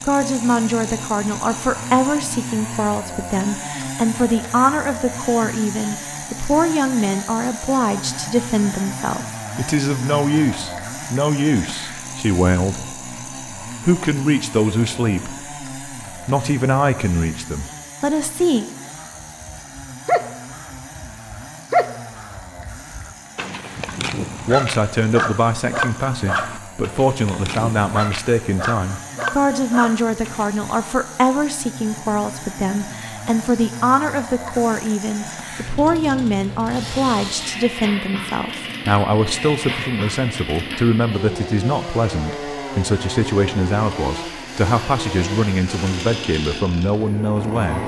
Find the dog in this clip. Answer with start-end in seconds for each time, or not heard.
18.9-30.7.